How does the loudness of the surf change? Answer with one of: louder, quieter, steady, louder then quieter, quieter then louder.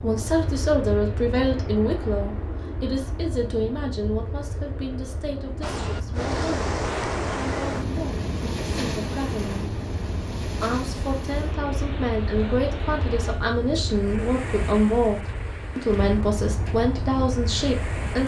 quieter.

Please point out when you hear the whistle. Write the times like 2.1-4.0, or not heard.
not heard.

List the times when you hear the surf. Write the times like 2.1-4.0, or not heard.
5.6-18.2.